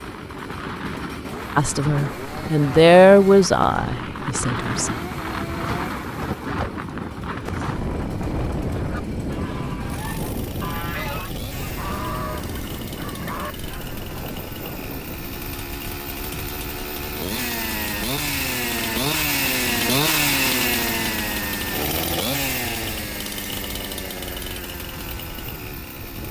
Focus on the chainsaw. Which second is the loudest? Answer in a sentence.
The loudest moment of the chainsaw is at 20 seconds.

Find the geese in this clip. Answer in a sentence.
You can hear the geese from 8.7 to 14.0 s.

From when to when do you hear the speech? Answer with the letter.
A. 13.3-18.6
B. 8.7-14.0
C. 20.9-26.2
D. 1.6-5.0
D.